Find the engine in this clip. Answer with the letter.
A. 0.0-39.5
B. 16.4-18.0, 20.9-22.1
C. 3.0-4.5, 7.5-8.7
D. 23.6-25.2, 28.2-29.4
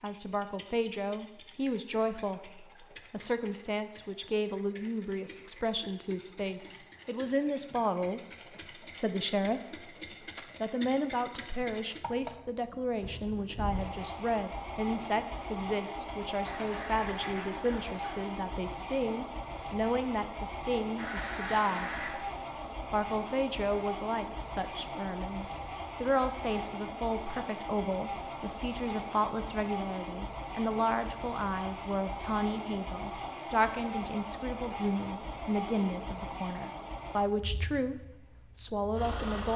A.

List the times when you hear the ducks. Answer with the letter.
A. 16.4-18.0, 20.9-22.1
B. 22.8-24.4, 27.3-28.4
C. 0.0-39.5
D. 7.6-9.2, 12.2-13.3
A.